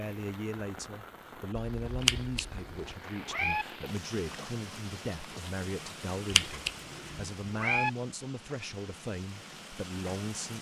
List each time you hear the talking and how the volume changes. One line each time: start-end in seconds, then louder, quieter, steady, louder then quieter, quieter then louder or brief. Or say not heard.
0.0-10.5 steady.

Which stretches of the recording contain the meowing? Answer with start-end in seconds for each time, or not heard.
2.0-3.6, 6.3-7.9.